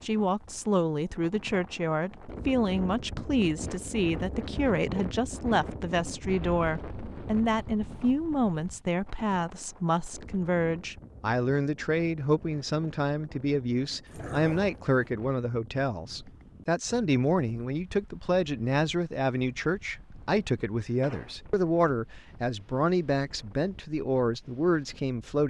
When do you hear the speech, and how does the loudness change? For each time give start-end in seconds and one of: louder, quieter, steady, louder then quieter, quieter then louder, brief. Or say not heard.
0.0-25.4 steady.